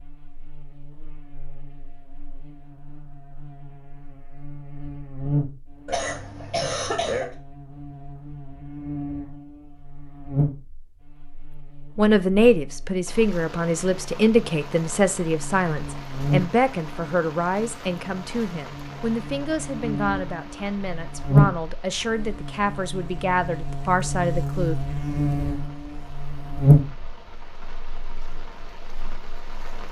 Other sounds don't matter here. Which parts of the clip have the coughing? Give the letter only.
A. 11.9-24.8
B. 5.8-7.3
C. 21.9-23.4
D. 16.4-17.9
B.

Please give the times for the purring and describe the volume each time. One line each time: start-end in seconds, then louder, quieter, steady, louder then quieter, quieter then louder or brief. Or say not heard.
not heard.